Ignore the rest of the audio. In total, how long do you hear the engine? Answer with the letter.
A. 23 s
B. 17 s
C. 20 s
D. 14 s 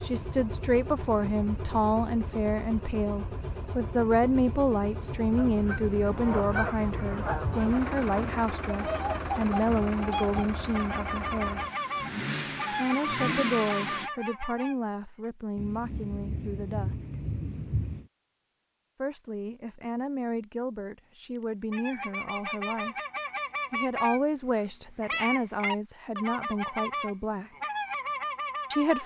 D.